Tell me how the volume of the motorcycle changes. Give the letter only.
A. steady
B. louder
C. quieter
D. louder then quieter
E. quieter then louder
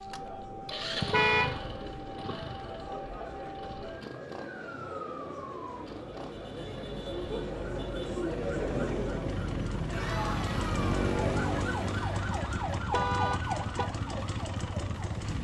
E.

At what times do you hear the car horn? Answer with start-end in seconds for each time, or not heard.
1.1-1.6, 12.9-13.9.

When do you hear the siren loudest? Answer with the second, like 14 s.
11 s.